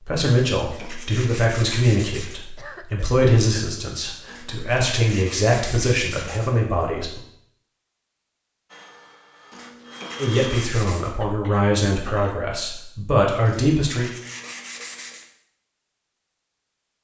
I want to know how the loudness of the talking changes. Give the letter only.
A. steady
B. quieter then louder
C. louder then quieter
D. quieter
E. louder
A.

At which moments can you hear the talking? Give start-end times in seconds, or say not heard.
0.0-7.2, 10.2-14.1.